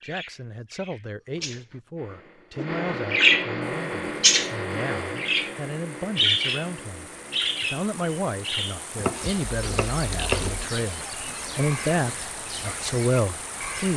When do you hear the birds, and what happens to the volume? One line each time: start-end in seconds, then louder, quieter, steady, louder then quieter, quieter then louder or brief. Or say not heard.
0.0-13.9 louder then quieter.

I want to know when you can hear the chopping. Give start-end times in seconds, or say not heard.
8.9-10.7.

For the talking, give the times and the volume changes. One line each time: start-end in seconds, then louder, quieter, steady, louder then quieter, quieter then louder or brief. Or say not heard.
0.0-13.9 louder.